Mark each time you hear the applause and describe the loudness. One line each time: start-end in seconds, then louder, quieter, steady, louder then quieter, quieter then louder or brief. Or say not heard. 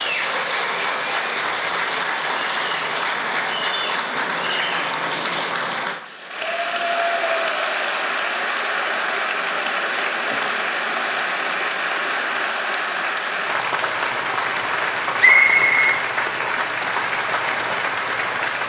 0.0-18.6 steady.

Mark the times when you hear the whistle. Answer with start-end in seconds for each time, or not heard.
15.2-16.6.